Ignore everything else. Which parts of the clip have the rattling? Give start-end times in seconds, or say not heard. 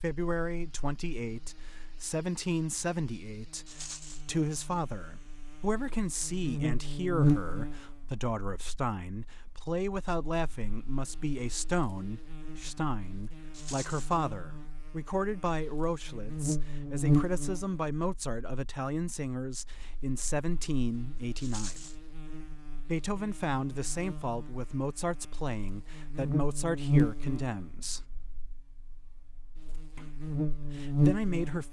3.6-4.2, 13.5-14.1, 21.4-21.9.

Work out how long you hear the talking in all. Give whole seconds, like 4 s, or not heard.
29 s.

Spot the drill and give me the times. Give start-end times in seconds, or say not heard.
not heard.